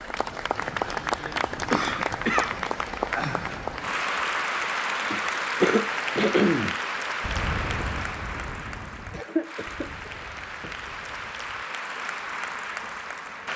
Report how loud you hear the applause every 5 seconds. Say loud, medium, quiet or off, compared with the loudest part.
loud, loud, medium.